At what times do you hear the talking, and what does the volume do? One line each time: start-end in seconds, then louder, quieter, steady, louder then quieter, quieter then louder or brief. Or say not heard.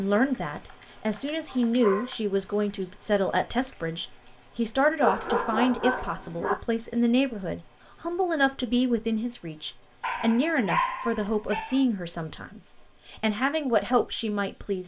0.0-14.8 steady.